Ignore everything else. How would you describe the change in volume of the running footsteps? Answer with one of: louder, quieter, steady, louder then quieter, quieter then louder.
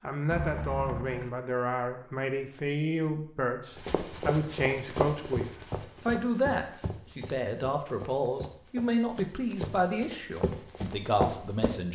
quieter then louder.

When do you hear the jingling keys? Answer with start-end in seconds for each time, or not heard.
0.3-1.4.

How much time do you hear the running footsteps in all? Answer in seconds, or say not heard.
8 s.